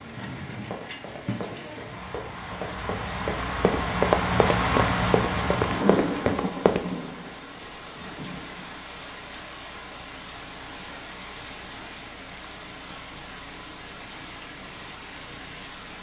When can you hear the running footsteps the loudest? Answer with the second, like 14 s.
4 s.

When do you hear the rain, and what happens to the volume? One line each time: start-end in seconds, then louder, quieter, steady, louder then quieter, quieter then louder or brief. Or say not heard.
0.0-15.9 louder then quieter.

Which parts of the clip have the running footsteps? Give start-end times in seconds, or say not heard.
0.7-7.0.